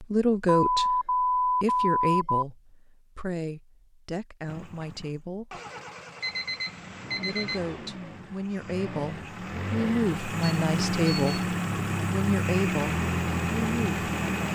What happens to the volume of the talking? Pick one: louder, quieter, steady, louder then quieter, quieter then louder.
quieter then louder.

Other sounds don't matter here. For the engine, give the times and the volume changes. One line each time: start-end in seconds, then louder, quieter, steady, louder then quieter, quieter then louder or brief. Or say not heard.
4.5-14.4 louder.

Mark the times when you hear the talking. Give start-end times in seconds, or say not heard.
0.0-5.6, 7.2-14.4.